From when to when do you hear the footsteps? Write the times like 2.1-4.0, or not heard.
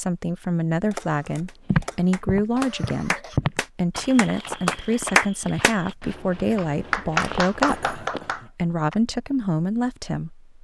1.6-8.3.